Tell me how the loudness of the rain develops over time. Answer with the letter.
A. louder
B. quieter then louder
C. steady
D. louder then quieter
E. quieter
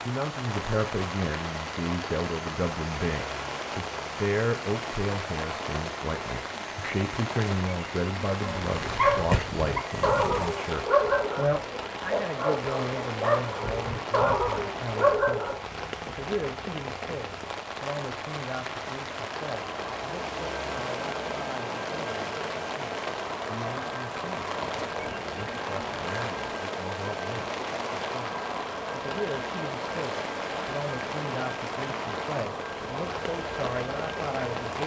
C.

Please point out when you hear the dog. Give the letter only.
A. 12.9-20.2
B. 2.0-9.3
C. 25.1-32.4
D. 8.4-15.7
D.